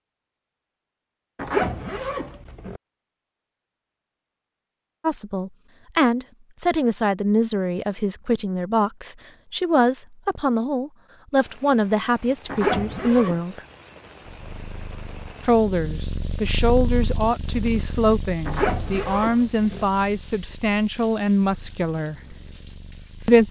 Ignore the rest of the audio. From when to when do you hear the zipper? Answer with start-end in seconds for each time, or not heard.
1.4-2.8, 12.4-13.4, 18.4-19.9.